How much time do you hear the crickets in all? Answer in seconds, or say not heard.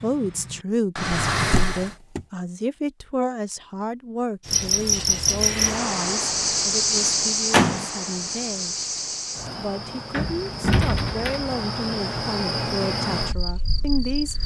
10 s.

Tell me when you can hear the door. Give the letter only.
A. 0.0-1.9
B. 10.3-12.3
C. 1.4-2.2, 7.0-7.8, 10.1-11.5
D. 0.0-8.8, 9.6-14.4
C.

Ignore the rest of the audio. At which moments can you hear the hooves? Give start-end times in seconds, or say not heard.
not heard.